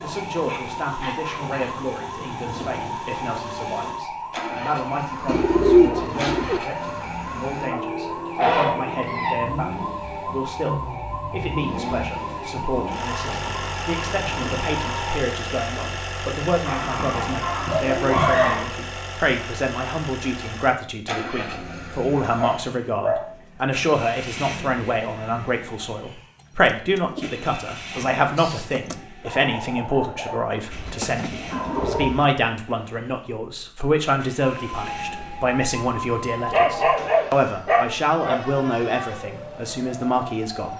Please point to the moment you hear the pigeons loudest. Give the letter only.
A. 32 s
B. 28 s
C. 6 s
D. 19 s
C.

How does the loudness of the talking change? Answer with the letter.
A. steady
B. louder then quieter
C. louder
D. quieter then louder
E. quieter
C.